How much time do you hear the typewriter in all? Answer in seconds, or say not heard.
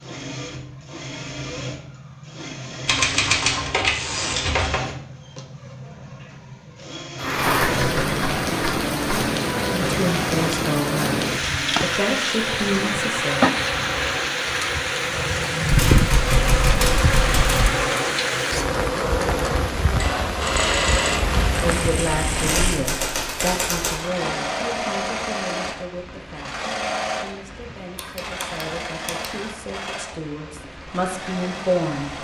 9 s.